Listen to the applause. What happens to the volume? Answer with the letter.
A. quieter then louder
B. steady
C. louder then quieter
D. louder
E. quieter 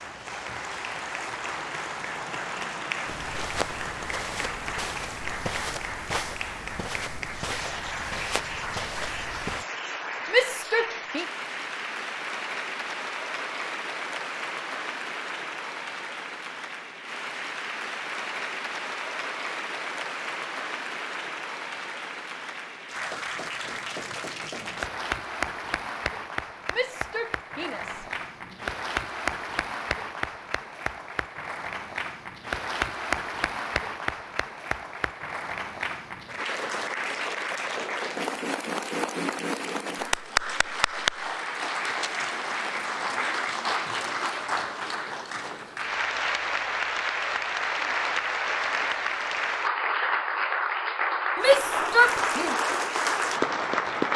D.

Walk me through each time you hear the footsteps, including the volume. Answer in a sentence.
The footsteps can be heard from 3.0 to 9.7 s, at a steady volume.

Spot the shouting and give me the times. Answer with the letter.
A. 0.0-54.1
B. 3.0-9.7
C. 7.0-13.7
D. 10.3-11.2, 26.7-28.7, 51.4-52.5
D.